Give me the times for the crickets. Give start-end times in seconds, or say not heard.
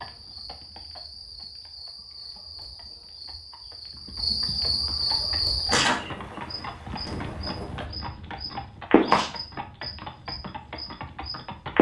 0.0-11.7.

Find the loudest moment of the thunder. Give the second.
7 s.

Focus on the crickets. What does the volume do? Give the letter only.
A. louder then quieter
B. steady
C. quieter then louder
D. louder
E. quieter
D.